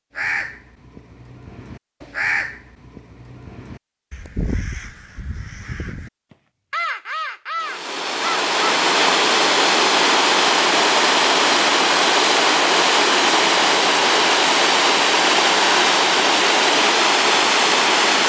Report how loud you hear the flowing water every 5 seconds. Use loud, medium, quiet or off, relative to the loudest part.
off, loud, loud, loud.